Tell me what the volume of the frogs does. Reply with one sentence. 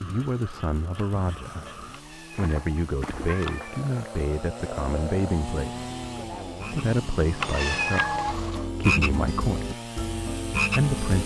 The volume of the frogs goes up.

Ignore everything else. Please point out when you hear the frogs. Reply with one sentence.
The frogs can be heard from 0.0 to 11.2 s.